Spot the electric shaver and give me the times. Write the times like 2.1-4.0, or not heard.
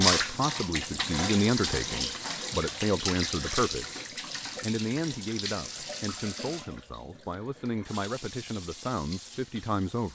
not heard.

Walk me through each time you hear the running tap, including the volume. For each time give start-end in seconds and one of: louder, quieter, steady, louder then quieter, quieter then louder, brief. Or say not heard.
0.0-10.1 quieter.